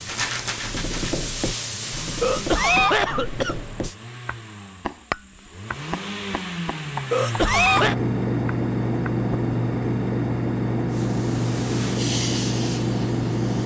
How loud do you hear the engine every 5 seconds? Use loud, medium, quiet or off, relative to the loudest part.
quiet, loud, loud.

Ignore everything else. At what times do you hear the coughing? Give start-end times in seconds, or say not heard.
2.2-3.6, 7.1-8.0.